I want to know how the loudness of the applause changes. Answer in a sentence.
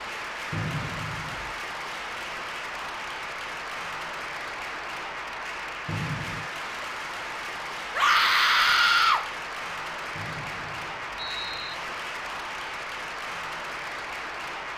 The loudness of the applause stays about the same.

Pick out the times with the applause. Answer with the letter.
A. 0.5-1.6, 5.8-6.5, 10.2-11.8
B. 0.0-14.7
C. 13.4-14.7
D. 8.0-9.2
B.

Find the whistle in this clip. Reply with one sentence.
You can hear the whistle from 0.5 to 1.6 s, from 5.8 to 6.5 s and from 10.2 to 11.8 s.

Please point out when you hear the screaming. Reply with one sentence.
You can hear the screaming from 8.0 to 9.2 s.